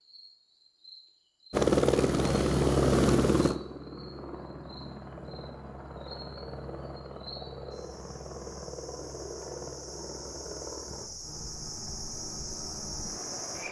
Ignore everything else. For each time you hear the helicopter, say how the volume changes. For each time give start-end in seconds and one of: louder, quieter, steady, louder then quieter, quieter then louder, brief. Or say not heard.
1.5-13.6 quieter.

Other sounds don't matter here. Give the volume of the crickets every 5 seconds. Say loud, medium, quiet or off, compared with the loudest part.
quiet, medium, loud.